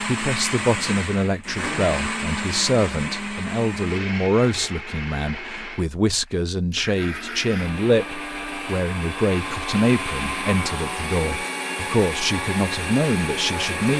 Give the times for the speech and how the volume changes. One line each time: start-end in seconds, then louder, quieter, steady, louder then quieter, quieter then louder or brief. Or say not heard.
0.0-13.9 steady.